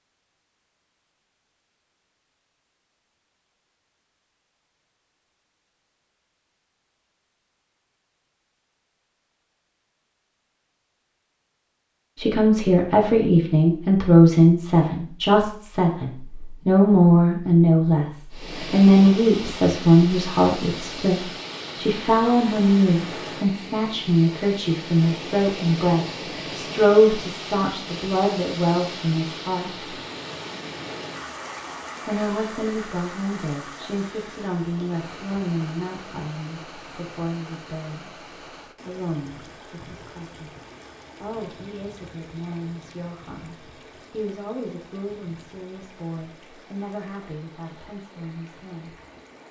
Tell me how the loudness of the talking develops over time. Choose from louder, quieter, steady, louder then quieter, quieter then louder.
quieter.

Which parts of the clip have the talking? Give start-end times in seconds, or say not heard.
12.2-29.7, 32.0-40.5, 41.2-49.0.